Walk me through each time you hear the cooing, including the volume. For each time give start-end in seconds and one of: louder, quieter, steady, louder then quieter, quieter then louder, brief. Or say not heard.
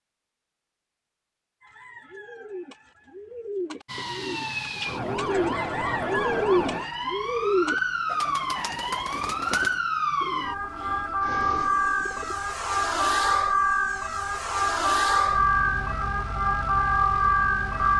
1.6-12.4 louder then quieter.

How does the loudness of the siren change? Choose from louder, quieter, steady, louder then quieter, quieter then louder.
louder.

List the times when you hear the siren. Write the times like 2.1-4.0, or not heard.
3.9-17.9.